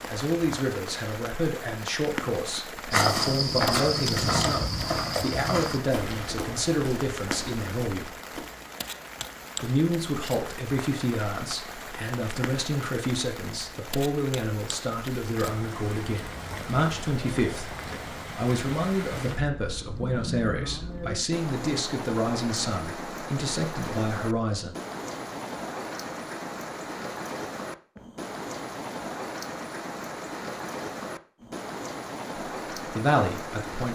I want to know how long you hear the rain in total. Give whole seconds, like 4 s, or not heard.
34 s.